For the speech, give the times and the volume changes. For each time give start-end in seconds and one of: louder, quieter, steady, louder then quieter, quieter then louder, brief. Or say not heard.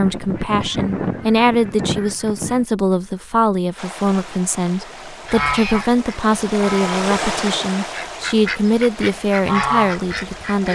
0.0-10.7 steady.